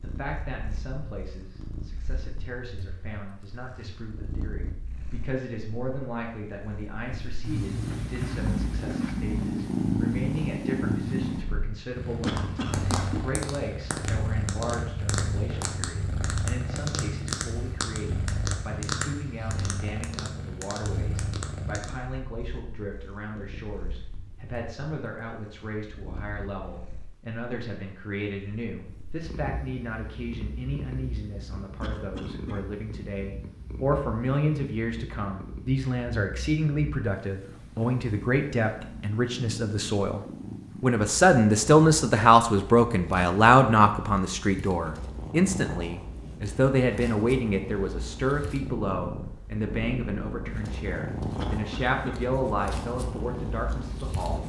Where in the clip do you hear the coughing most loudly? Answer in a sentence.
The volume of the coughing peaks at 13 seconds.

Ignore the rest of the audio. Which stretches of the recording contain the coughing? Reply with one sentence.
The coughing can be heard from 12.2 to 13.1 s, from 31.8 to 32.6 s and from 51.4 to 52.2 s.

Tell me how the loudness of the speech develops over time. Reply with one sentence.
The volume of the speech goes up.